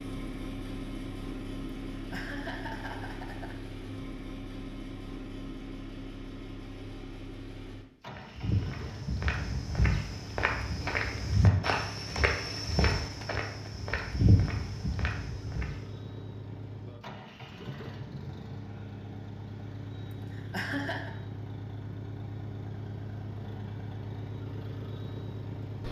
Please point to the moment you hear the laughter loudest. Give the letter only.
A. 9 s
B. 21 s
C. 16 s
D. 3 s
B.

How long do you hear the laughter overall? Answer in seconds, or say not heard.
3 s.